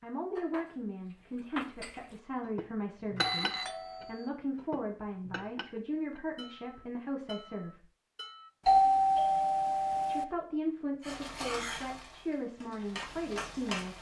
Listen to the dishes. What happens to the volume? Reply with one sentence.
The loudness of the dishes goes down.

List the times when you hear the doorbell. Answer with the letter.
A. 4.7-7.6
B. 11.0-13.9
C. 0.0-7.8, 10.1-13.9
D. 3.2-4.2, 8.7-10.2
D.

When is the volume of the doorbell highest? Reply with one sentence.
The volume of the doorbell peaks at 9 seconds.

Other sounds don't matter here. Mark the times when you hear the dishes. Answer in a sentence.
The dishes can be heard from 0.3 to 8.5 s.